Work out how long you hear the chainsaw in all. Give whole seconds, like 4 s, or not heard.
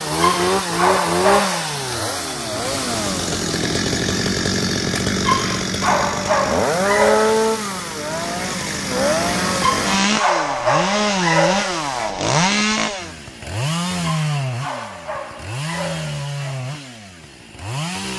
18 s.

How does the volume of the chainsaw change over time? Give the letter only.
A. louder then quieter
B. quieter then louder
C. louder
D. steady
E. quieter
E.